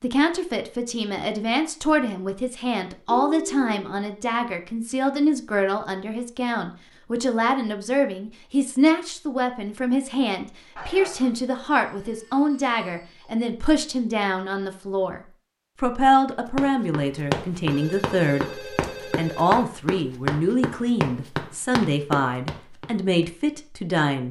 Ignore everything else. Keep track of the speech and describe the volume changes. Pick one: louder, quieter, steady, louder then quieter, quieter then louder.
steady.